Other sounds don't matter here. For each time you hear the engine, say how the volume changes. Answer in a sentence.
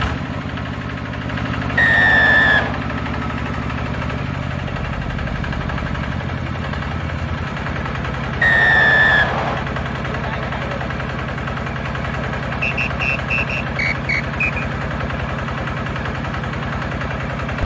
You can hear the engine from 0.0 to 17.6 s, at a steady volume.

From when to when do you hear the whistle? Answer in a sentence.
You can hear the whistle from 1.8 to 2.8 s, from 8.4 to 9.7 s and from 12.6 to 14.7 s.